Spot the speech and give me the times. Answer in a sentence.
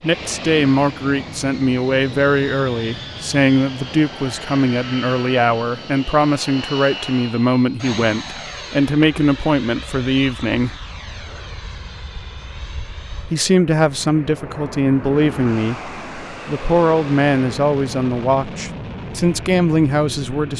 You can hear the speech from 0.0 to 10.8 s and from 13.3 to 20.5 s.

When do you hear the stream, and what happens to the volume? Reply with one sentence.
The stream can't be heard in this clip.